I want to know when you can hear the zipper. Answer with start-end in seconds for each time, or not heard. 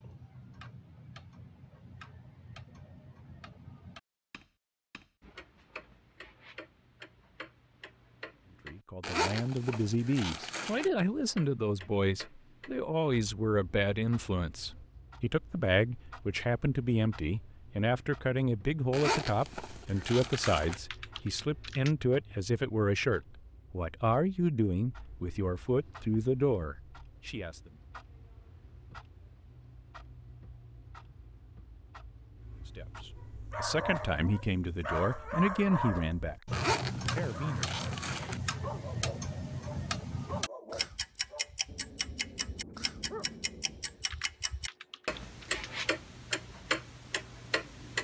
9.0-10.9, 18.9-20.8, 36.5-38.4.